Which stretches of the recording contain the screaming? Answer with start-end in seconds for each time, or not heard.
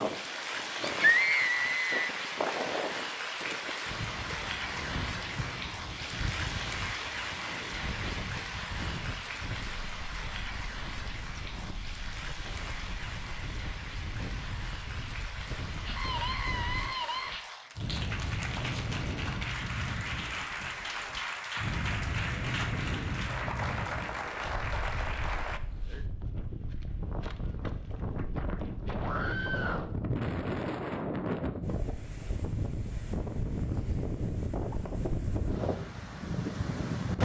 0.8-2.1, 15.8-17.4, 29.0-29.9.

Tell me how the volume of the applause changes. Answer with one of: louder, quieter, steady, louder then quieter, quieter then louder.
quieter then louder.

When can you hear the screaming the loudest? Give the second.
1 s.